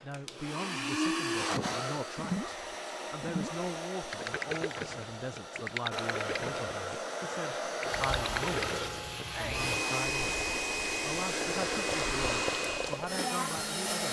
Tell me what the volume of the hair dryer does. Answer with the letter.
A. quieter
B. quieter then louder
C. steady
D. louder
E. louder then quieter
B.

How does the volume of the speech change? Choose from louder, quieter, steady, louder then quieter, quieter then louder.
steady.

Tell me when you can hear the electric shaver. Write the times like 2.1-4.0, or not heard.
7.8-9.8.